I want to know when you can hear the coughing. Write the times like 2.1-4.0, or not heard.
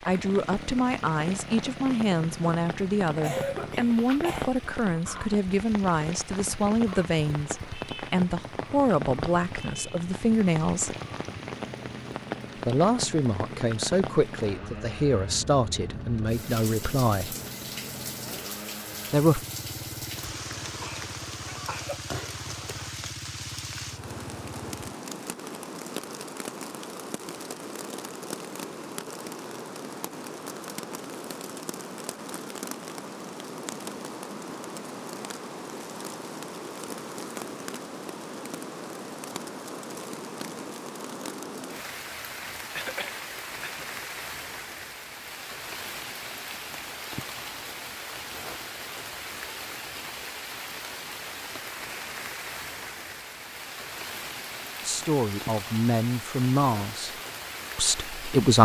3.2-4.5, 20.3-22.0, 42.8-43.9.